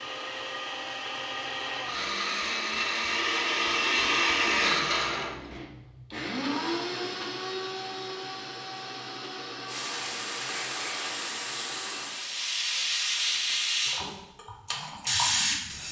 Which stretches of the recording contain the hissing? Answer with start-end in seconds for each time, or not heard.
9.7-15.8.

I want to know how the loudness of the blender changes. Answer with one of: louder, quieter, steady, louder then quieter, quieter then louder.
louder then quieter.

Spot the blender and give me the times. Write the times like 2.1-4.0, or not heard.
0.0-12.1.